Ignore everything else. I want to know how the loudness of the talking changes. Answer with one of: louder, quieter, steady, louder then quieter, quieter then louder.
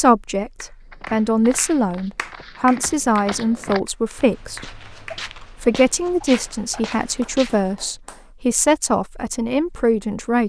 steady.